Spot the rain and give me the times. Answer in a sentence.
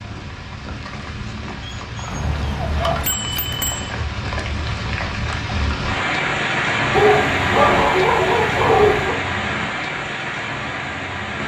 You can hear the rain from 0.0 to 11.4 s.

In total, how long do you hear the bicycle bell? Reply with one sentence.
You can hear the bicycle bell for 2 seconds altogether.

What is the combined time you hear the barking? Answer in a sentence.
You can hear the barking for 4 seconds altogether.